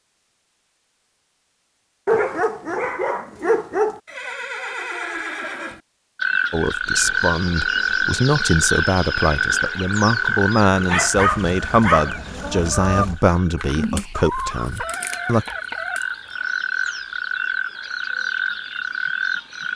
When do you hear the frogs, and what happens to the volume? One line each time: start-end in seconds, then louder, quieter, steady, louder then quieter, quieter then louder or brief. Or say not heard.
6.2-19.7 quieter then louder.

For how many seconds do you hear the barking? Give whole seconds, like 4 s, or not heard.
4 s.